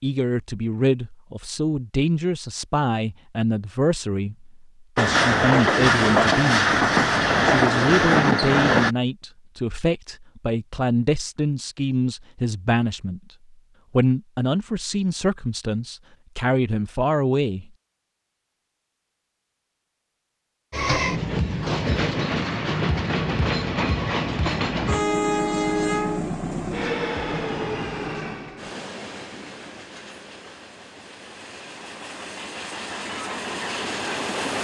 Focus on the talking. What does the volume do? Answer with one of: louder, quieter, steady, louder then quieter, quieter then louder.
steady.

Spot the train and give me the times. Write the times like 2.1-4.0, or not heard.
5.0-8.9, 20.7-34.6.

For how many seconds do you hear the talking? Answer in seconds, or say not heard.
16 s.